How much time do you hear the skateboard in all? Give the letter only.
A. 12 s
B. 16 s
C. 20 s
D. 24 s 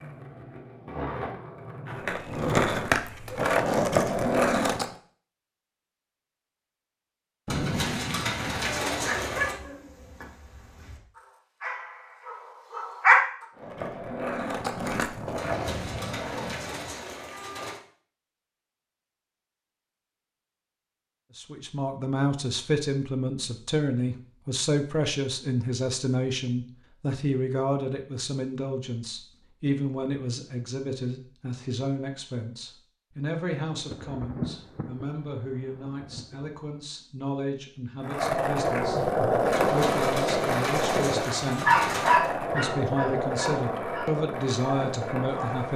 B.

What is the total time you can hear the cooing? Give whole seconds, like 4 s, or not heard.
7 s.